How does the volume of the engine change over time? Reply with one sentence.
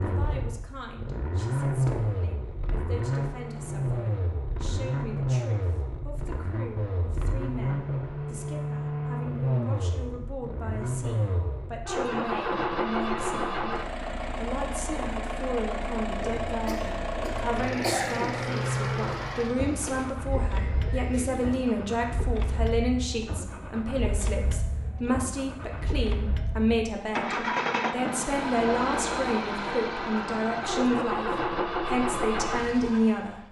The loudness of the engine goes down, then up.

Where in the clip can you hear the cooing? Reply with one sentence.
The cooing can be heard from 16.1 to 21.9 s.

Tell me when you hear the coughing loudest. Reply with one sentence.
The volume of the coughing peaks at 18 seconds.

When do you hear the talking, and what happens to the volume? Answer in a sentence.
The talking can be heard from 0.0 to 33.4 s, getting louder.